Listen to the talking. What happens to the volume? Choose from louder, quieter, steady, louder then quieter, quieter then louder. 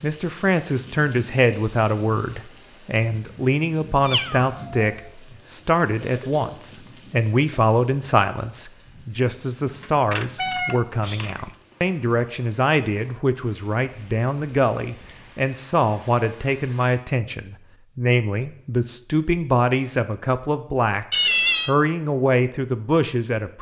steady.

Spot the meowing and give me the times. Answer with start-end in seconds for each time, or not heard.
4.0-5.0, 9.8-11.4, 21.1-21.7.